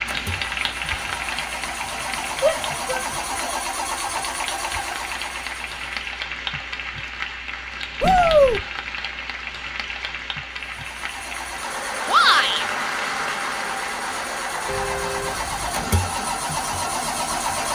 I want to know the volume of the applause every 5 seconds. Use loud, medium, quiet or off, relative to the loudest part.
loud, loud, loud, medium.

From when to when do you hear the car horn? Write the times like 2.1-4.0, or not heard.
14.7-15.8.